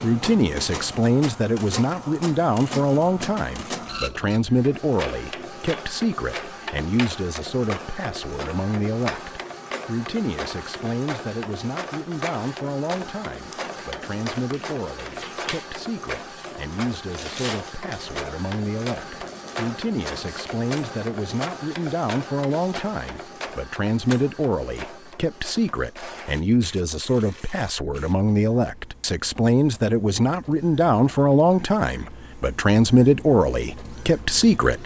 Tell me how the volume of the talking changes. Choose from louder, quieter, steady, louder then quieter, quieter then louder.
quieter then louder.